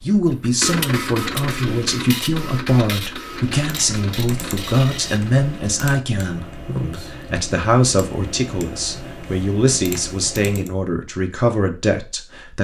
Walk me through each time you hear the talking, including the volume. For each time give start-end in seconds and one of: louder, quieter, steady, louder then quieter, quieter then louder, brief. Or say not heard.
0.0-12.5 steady.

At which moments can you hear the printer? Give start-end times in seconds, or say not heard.
0.0-5.5.